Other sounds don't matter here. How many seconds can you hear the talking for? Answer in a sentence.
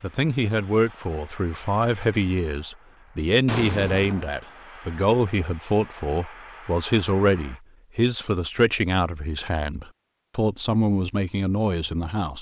The talking can be heard for 12 seconds in total.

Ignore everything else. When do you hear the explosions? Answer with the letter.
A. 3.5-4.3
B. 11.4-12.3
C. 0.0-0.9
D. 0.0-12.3
A.